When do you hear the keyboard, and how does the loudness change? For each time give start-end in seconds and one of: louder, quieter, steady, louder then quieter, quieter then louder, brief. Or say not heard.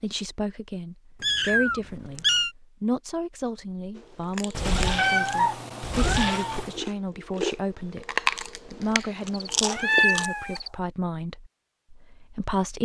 not heard.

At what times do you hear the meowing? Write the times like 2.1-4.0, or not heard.
1.2-2.5, 4.5-6.8, 8.8-10.7.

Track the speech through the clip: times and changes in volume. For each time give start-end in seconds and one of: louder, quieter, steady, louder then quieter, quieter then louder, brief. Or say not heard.
0.0-12.8 steady.